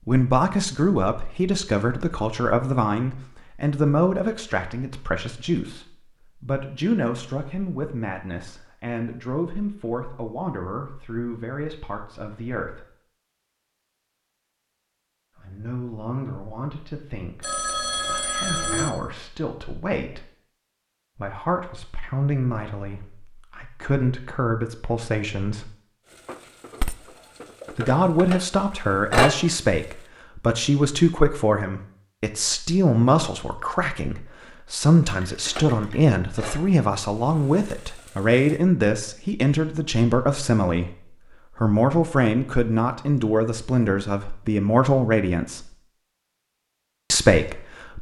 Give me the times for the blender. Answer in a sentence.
You can't hear the blender here.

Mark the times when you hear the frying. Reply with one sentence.
The frying can be heard from 26.2 to 29.4 s and from 35.5 to 36.7 s.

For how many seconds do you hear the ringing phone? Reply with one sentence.
You can hear the ringing phone for 2 seconds altogether.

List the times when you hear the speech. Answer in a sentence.
You can hear the speech from 0.1 to 12.8 s, from 15.3 to 20.2 s, from 21.1 to 25.7 s, from 27.8 to 45.8 s and from 47.1 to 47.9 s.